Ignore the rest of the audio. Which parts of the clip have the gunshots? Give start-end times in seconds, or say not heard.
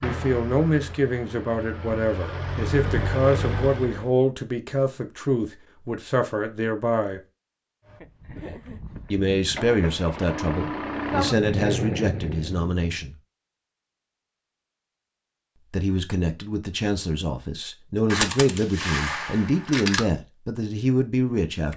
18.1-20.0.